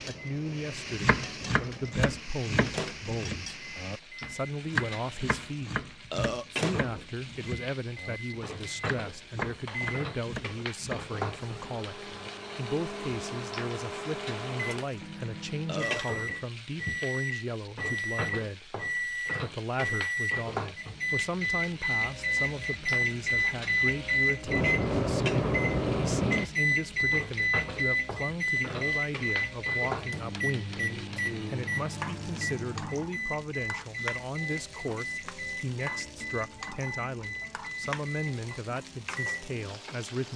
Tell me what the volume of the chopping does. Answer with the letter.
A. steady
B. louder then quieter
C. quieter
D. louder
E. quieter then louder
C.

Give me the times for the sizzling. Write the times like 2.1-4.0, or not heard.
0.0-40.3.